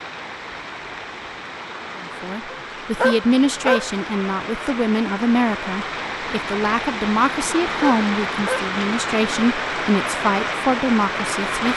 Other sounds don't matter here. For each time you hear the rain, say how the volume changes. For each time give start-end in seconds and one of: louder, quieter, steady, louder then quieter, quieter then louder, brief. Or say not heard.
0.0-11.7 louder.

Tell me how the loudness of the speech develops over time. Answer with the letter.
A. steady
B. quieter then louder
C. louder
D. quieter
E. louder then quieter
A.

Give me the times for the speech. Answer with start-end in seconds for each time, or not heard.
2.0-11.7.